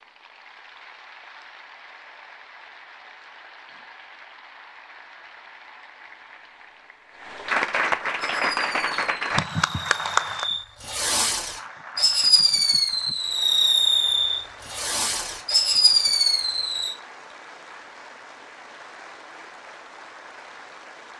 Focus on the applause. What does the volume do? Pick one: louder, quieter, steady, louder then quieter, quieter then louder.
louder then quieter.